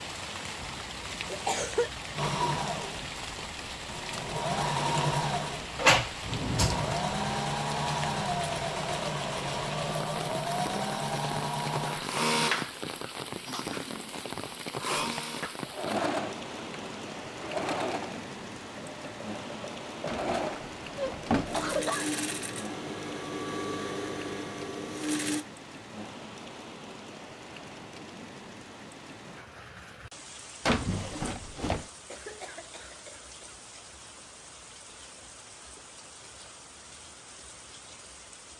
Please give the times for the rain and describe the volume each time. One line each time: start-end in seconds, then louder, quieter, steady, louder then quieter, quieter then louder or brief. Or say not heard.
0.0-38.5 quieter.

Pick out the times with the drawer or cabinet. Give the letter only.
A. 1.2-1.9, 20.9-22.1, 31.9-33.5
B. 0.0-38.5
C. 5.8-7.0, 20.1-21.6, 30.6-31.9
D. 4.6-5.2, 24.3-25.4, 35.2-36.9
C.